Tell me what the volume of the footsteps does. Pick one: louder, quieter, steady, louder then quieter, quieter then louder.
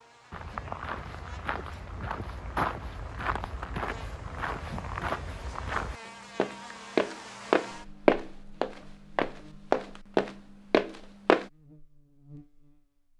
louder.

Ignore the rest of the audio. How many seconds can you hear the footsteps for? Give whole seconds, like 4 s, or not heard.
11 s.